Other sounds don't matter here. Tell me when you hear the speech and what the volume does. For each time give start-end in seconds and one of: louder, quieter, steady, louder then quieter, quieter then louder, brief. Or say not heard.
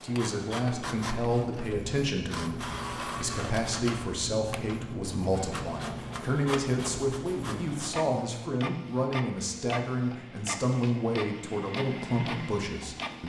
0.0-13.2 steady.